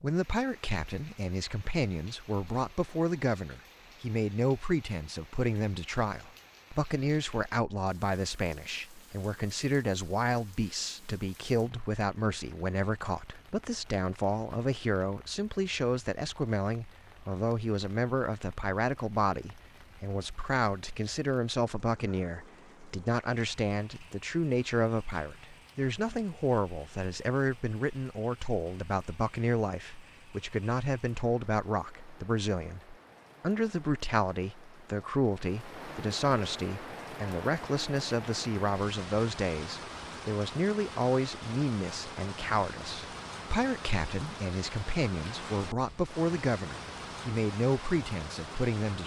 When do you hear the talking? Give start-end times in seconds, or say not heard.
0.0-49.0.